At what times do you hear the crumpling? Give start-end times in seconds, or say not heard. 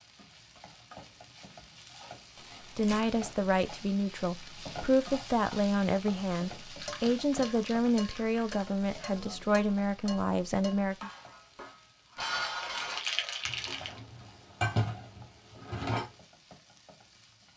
2.4-3.1, 6.8-8.7, 12.4-14.0.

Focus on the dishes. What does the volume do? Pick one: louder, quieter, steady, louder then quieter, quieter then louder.
louder.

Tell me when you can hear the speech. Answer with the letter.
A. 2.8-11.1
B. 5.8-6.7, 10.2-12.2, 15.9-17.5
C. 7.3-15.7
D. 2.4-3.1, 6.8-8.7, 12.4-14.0
A.